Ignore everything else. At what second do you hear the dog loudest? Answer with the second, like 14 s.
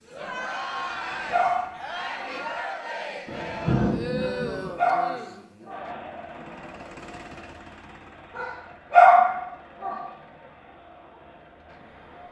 9 s.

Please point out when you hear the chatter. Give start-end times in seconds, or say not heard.
0.0-12.2.